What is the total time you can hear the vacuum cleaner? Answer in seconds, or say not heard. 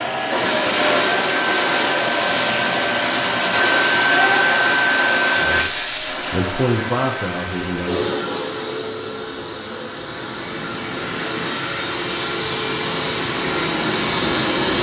15 s.